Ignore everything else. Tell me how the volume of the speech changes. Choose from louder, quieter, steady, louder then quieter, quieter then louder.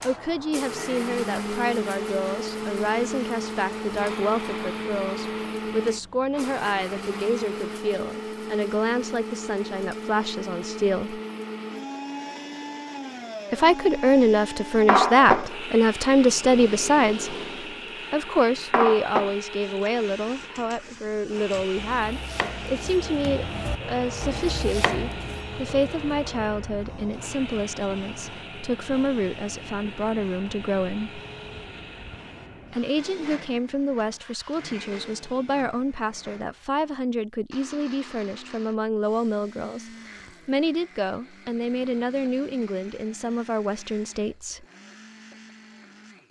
louder then quieter.